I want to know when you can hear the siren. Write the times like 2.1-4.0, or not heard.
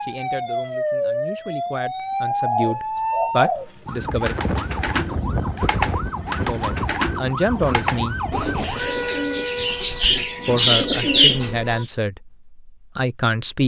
0.0-11.8.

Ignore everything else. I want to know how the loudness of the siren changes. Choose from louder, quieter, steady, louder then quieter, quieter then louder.
quieter.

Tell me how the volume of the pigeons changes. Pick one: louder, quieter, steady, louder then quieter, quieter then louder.
louder.